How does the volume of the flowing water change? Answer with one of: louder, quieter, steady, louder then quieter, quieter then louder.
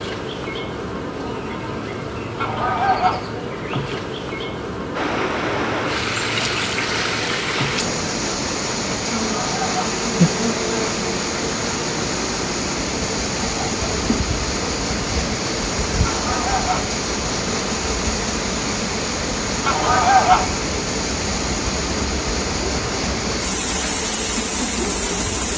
steady.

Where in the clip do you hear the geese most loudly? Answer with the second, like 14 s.
20 s.